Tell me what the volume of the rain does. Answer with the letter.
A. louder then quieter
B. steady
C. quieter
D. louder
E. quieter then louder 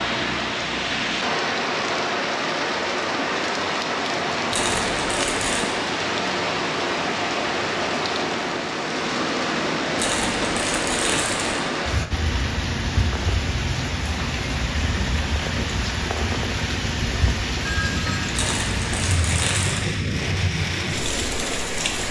B.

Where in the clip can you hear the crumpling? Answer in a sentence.
The crumpling can be heard from 4.5 to 5.7 s, from 9.9 to 11.6 s and from 18.3 to 19.8 s.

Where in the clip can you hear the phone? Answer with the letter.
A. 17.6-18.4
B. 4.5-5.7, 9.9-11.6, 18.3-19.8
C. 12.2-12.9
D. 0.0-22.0
A.